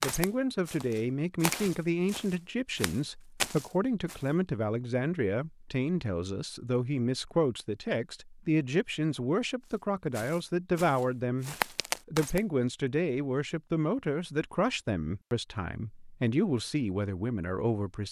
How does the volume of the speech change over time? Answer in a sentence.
The volume of the speech stays about the same.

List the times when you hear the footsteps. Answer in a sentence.
The footsteps can be heard from 0.0 to 4.2 s and from 10.2 to 12.4 s.